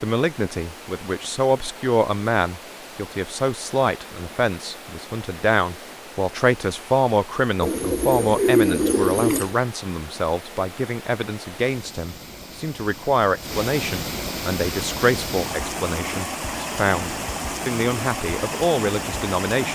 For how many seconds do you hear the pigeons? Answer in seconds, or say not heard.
2 s.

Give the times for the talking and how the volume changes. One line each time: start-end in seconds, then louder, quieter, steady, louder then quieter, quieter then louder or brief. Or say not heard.
0.0-19.7 steady.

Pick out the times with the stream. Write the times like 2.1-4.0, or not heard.
0.0-19.7.